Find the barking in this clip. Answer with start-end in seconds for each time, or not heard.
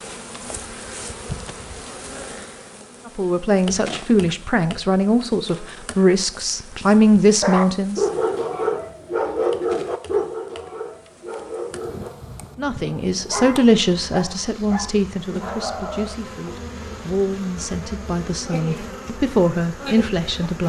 7.4-16.1.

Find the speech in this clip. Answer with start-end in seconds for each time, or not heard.
3.1-8.1, 12.6-20.6.